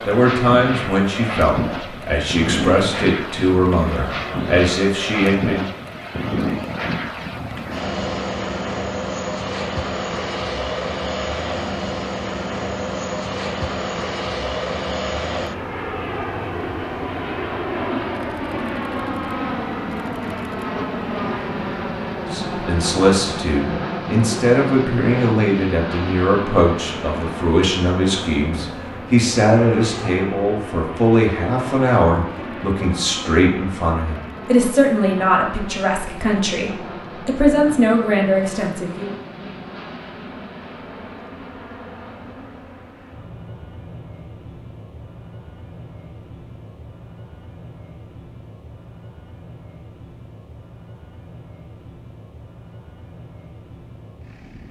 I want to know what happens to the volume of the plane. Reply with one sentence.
The loudness of the plane goes down.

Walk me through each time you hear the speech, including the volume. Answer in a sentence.
The speech can be heard from 0.1 to 5.7 s, at a steady volume; and from 22.3 to 39.1 s, at a steady volume.